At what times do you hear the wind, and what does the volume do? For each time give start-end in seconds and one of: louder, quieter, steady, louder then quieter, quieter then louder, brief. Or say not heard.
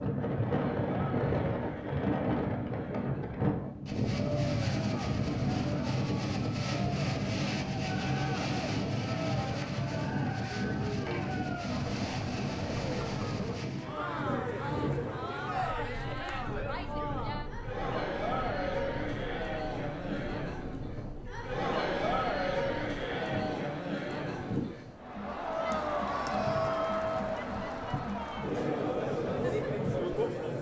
0.0-30.5 quieter.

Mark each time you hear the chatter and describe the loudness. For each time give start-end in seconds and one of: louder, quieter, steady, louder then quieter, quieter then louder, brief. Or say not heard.
0.2-30.5 louder.